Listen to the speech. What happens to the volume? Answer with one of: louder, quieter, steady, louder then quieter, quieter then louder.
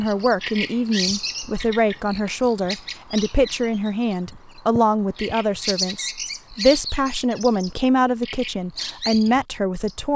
steady.